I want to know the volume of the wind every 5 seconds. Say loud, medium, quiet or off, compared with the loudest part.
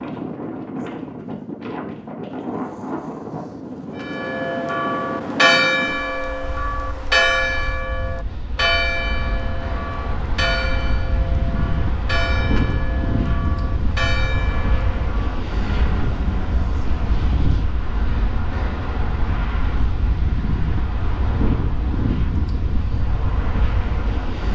loud, medium, loud, loud, loud.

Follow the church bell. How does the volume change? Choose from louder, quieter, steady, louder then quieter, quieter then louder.
quieter.